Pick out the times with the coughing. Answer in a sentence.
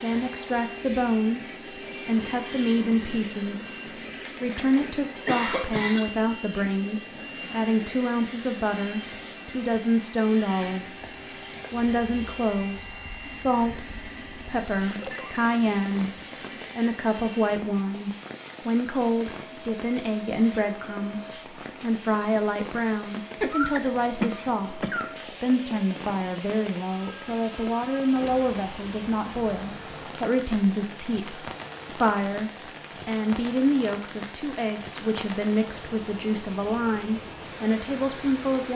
You can hear the coughing from 4.2 to 6.1 s and from 23.4 to 25.1 s.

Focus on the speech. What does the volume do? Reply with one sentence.
The volume of the speech stays about the same.